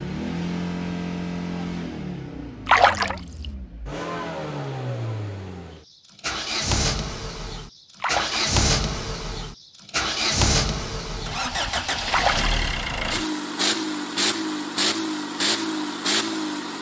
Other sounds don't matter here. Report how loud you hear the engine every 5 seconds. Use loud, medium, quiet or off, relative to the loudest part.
medium, loud, loud, loud.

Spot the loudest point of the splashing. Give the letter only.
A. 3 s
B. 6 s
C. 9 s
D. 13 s
A.